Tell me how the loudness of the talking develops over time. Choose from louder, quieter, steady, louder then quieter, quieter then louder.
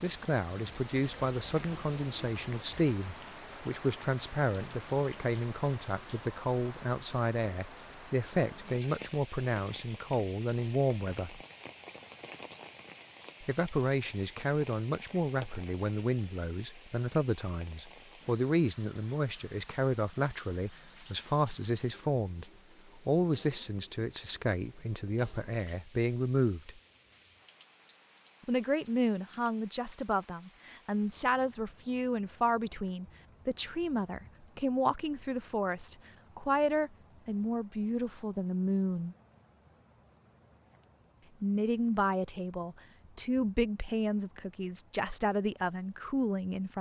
steady.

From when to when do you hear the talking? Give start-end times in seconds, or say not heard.
0.0-11.4, 13.4-26.8, 28.4-39.1, 41.4-46.7.